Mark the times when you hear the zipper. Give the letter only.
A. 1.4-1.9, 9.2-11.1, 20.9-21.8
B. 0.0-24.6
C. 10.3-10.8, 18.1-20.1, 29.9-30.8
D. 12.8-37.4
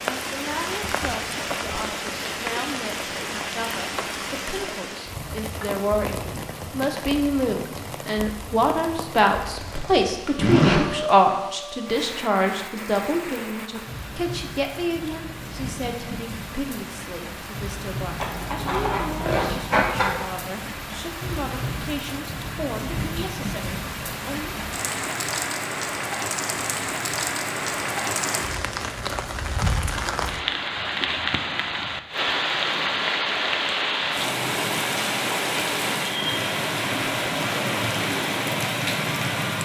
C.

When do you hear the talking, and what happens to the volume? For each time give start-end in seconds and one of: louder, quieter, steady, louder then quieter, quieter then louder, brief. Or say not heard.
0.0-24.6 louder then quieter.